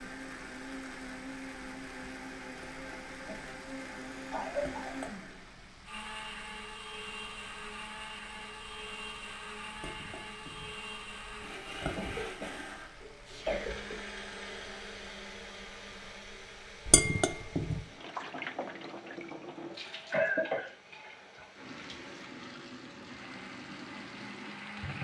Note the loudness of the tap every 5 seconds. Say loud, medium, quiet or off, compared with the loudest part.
medium, medium, medium, loud, loud.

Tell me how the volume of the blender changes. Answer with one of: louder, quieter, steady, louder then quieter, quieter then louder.
quieter.